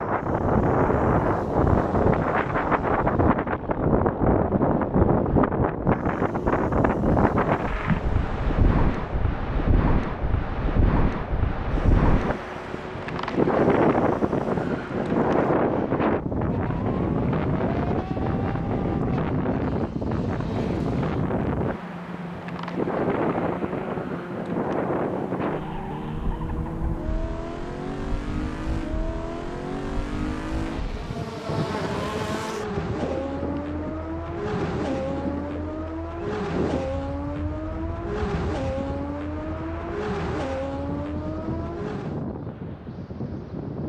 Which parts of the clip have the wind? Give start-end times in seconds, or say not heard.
0.0-43.8.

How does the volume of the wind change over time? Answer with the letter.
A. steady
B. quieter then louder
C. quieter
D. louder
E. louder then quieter
C.